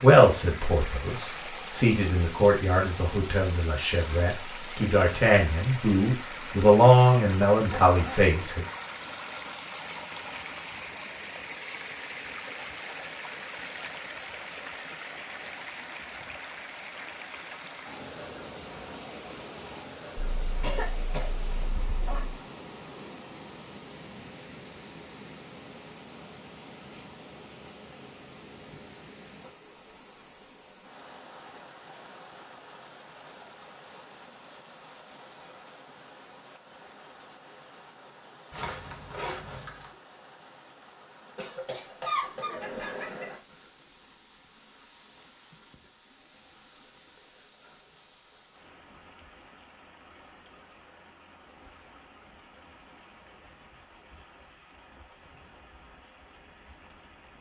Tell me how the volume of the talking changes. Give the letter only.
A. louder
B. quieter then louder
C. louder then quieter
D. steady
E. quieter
A.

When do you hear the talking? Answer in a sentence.
The talking can be heard from 0.0 to 8.7 s.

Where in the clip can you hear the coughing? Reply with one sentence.
You can hear the coughing from 7.7 to 8.3 s, from 20.1 to 22.4 s and from 41.4 to 43.4 s.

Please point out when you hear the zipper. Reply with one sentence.
You can hear the zipper from 38.5 to 40.0 s.